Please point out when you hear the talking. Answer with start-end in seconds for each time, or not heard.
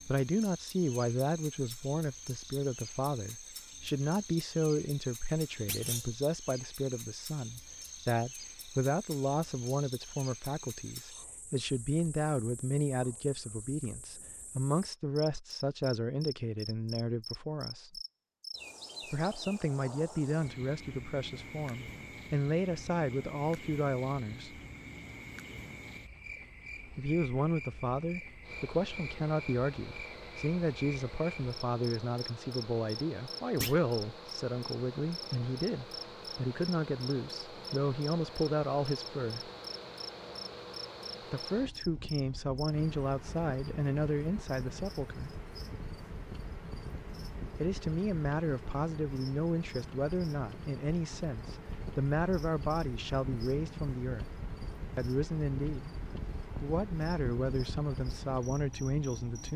0.1-18.0, 19.1-24.6, 26.9-39.5, 41.3-45.4, 47.5-55.9, 56.6-59.5.